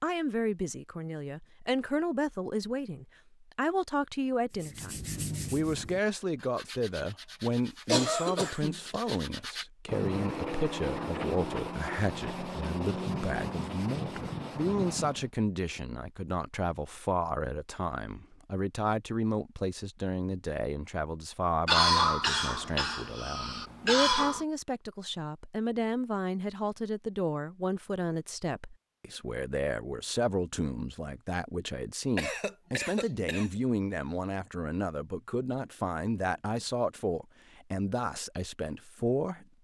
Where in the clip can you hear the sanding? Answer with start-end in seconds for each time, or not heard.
4.5-15.3.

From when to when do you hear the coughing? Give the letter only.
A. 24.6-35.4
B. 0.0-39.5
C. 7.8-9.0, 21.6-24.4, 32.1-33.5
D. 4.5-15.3
C.